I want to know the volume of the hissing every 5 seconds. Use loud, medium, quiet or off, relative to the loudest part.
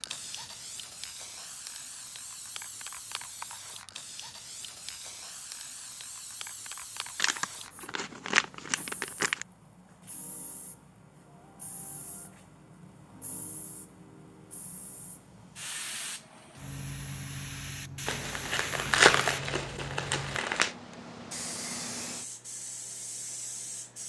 loud, medium, medium, loud, loud.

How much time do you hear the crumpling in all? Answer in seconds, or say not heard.
5 s.